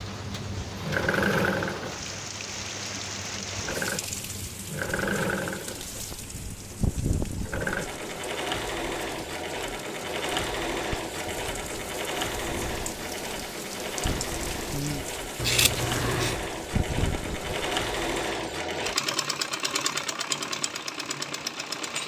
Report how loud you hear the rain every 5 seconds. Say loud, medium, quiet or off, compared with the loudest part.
loud, loud, loud, loud, off.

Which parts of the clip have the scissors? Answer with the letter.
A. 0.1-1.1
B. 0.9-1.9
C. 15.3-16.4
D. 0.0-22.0
C.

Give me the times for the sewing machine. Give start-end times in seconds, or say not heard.
0.0-22.0.